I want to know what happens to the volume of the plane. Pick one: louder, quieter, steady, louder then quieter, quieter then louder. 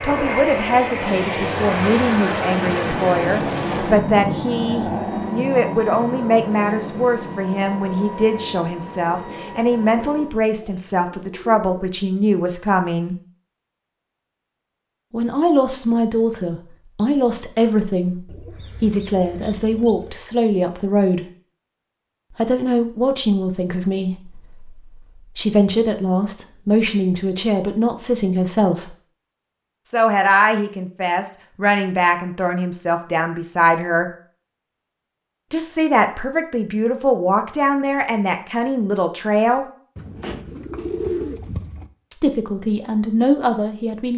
quieter.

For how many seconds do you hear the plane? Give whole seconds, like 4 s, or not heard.
10 s.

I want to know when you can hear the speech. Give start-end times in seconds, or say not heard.
0.0-13.2, 15.1-21.2, 22.4-28.9, 29.9-34.0, 35.5-39.6, 42.1-44.1.